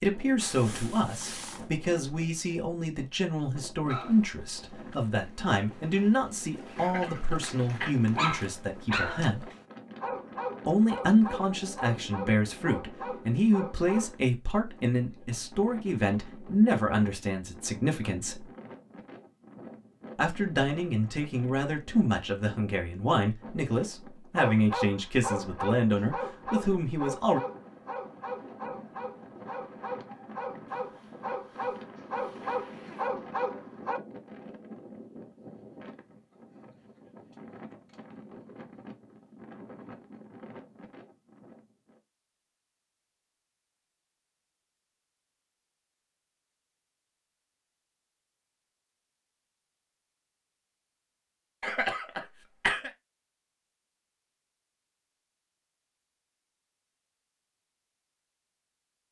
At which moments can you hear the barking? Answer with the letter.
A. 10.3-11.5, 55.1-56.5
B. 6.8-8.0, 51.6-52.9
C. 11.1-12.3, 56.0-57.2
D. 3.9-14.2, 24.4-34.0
D.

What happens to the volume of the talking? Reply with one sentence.
The volume of the talking stays about the same.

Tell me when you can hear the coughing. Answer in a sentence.
The coughing can be heard from 6.8 to 8.0 s and from 51.6 to 52.9 s.